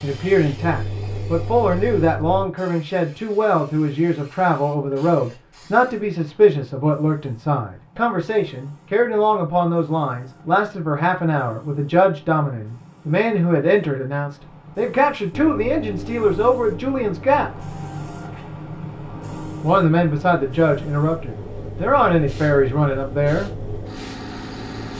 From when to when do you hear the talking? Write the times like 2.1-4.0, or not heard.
0.0-17.6, 19.6-23.5.